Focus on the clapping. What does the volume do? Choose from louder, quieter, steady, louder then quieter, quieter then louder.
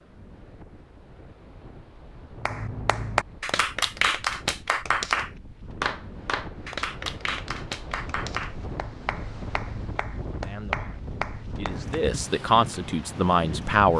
quieter.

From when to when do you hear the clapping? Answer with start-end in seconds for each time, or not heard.
2.4-11.9.